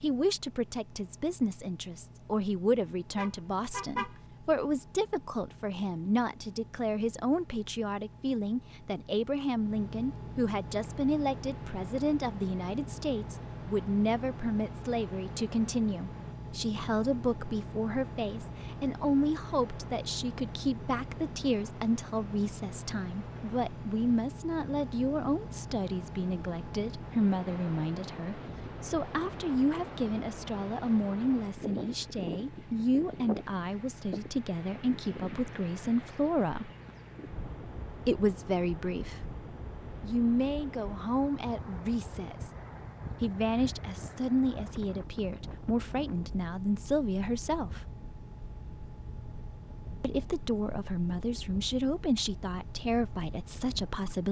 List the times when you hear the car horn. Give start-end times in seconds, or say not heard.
3.1-4.2.